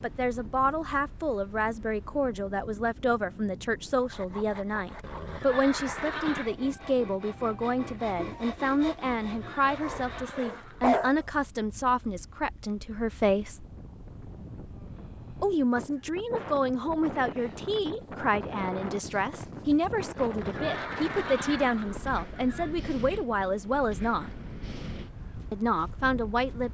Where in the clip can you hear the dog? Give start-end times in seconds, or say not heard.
9.8-11.2.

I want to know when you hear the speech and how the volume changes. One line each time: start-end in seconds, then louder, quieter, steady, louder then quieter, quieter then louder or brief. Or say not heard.
0.0-13.7 steady
15.4-24.3 steady
25.5-26.6 brief.